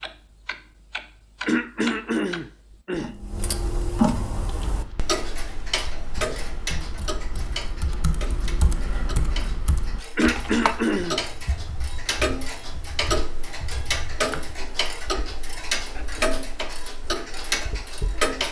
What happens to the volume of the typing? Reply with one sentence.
The volume of the typing goes up, then down.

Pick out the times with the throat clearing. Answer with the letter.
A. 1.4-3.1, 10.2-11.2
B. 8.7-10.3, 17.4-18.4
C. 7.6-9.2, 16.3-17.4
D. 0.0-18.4
A.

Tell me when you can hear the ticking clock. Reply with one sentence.
You can hear the ticking clock from 0.0 to 18.4 s.